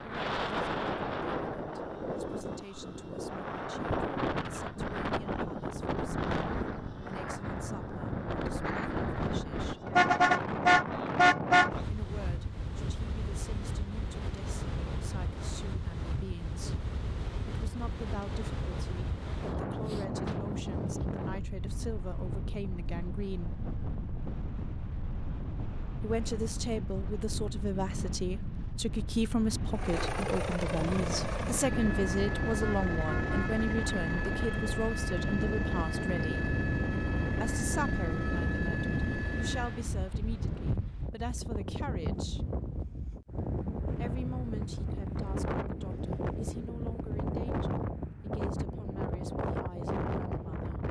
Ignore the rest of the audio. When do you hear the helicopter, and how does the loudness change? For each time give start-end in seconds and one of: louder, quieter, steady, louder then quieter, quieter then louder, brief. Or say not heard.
29.7-39.9 steady.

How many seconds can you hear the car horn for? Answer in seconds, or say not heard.
3 s.